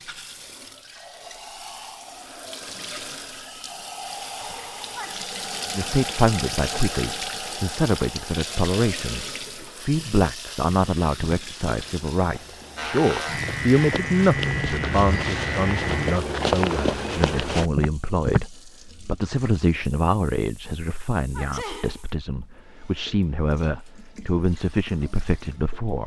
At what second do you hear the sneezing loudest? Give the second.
22 s.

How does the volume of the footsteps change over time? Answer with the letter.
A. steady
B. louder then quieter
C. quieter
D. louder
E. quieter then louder
D.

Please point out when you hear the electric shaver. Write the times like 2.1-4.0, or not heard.
12.8-16.2.